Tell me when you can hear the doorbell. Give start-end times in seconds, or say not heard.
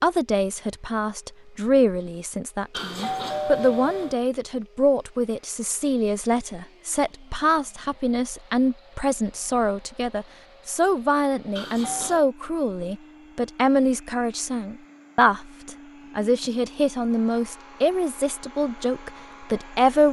2.7-4.2, 11.6-12.3.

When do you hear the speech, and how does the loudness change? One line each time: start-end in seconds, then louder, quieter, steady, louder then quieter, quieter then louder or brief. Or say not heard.
0.0-20.0 steady.